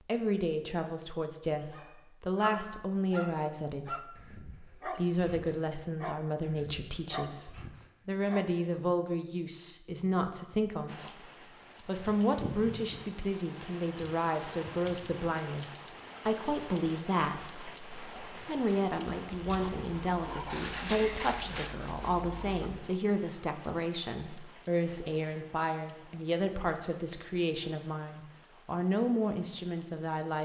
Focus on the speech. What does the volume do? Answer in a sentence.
The loudness of the speech stays about the same.